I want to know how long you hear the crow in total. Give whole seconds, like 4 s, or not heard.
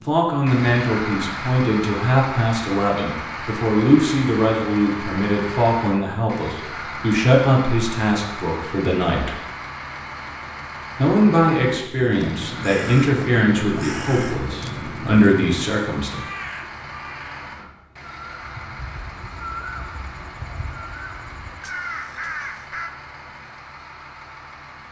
11 s.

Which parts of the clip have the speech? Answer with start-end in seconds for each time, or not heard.
0.1-9.3, 10.9-16.2.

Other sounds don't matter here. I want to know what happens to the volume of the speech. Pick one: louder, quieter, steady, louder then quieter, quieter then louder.
steady.